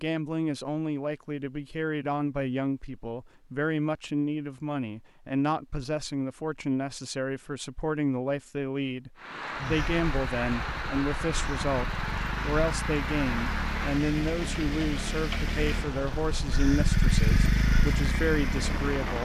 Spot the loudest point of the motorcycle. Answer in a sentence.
The loudest moment of the motorcycle is at 17 seconds.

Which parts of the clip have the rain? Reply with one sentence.
You can hear the rain from 9.2 to 19.1 s.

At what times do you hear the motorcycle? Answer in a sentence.
You can hear the motorcycle from 9.6 to 19.1 s.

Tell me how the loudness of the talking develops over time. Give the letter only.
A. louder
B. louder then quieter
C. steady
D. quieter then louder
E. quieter
C.